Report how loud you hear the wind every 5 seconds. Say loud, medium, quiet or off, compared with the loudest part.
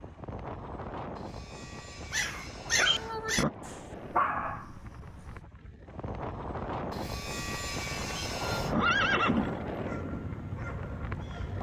medium, loud, loud.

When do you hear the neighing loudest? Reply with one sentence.
The volume of the neighing peaks at 9 seconds.